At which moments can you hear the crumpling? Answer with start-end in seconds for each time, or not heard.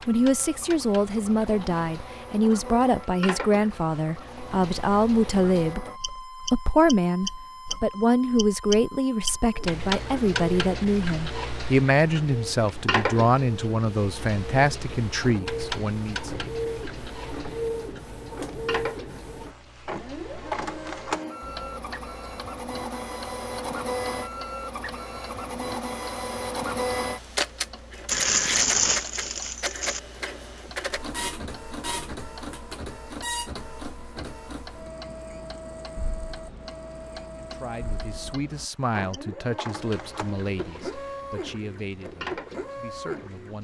28.1-30.0.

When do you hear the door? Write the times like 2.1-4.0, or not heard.
not heard.